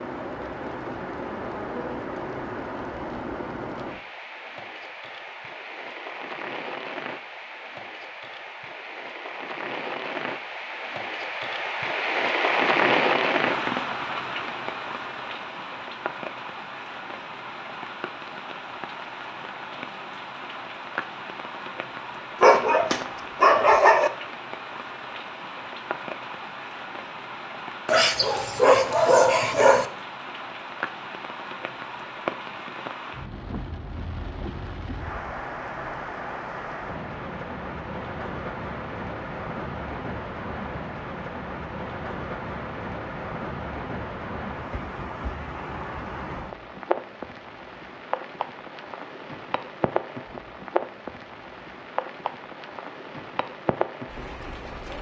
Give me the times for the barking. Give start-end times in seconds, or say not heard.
22.4-24.1, 27.9-29.9.